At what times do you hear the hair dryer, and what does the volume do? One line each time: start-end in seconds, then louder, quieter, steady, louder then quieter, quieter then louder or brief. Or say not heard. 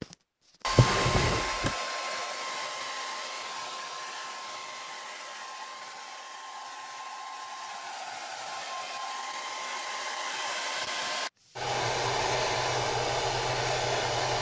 0.0-14.3 quieter then louder.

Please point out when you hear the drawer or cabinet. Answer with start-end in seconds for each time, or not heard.
0.7-1.8.